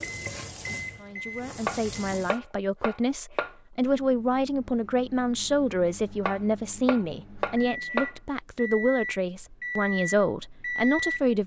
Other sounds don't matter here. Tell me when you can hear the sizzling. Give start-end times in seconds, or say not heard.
0.0-2.4.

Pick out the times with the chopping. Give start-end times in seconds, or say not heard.
1.6-3.5, 6.2-8.2.